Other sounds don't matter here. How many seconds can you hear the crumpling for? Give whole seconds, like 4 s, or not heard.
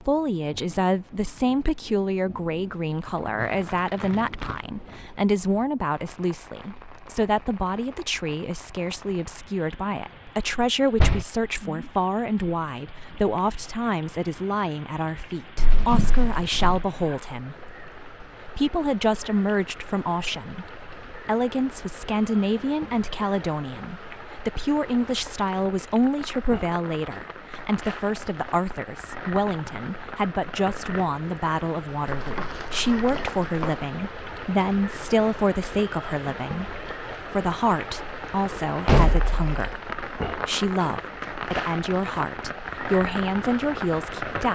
4 s.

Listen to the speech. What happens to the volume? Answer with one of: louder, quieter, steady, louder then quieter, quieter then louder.
steady.